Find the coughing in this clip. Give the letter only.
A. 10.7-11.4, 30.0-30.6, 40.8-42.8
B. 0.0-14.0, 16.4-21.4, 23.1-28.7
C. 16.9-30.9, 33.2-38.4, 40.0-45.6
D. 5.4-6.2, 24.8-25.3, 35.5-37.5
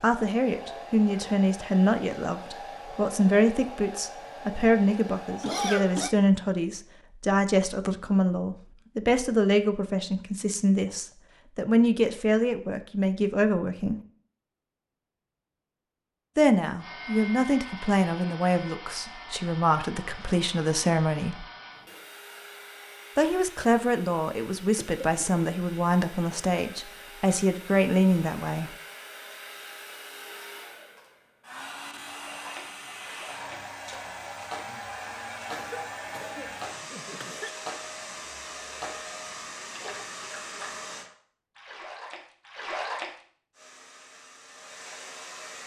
D.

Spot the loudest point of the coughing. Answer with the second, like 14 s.
6 s.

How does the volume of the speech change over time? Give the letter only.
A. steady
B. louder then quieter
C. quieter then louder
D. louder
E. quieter
A.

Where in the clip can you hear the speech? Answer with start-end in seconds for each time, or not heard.
0.0-14.0, 16.4-21.4, 23.1-28.7.